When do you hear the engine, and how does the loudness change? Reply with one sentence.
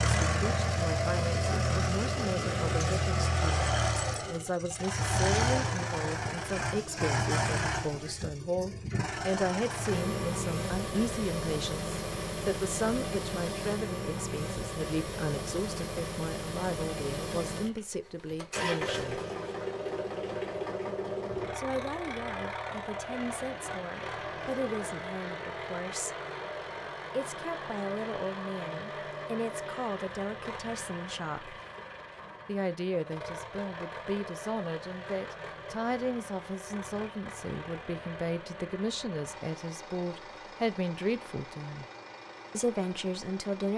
The engine can be heard from 0.0 to 43.7 s, getting quieter.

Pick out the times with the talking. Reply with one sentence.
You can hear the talking from 0.0 to 19.2 s, from 21.6 to 26.1 s, from 27.1 to 31.6 s, from 32.5 to 41.9 s and from 42.5 to 43.7 s.